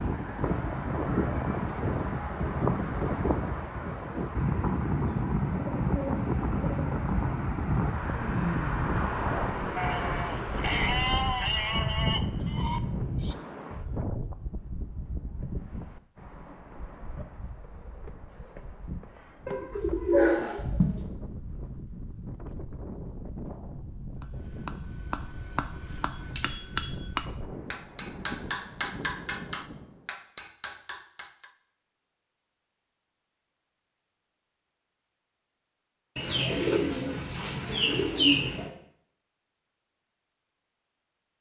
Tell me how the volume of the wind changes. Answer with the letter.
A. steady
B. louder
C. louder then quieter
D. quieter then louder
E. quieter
E.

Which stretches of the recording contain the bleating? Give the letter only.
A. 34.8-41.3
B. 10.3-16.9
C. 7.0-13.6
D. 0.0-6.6
C.